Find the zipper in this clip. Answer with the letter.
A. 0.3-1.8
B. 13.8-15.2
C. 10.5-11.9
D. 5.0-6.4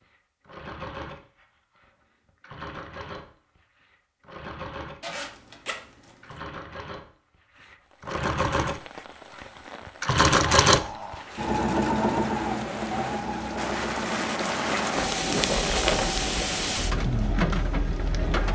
D.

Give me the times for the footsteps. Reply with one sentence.
You can't hear the footsteps here.